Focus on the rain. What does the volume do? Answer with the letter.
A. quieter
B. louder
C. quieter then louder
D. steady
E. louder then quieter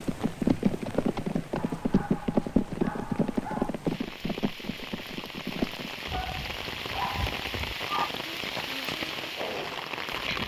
B.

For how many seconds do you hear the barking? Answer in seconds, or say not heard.
4 s.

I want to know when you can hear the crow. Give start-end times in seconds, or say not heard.
not heard.